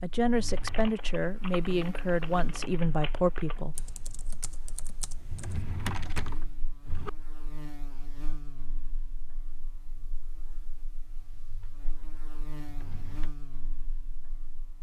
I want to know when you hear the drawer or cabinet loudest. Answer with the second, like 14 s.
6 s.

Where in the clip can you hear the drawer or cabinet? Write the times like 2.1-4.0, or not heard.
0.2-0.9, 5.2-7.1, 12.6-13.3.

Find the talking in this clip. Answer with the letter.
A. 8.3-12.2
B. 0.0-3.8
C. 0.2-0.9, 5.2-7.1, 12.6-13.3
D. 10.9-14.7
B.